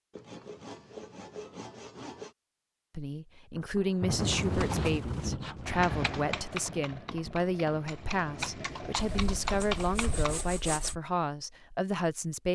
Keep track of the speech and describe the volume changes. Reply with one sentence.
The volume of the speech stays about the same.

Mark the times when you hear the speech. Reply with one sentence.
You can hear the speech from 3.0 to 12.5 s.